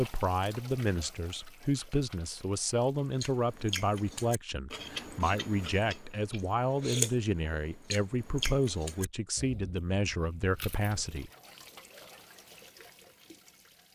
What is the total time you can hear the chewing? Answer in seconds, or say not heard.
8 s.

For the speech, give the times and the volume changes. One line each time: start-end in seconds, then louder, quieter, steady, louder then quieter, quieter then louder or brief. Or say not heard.
0.0-11.3 steady.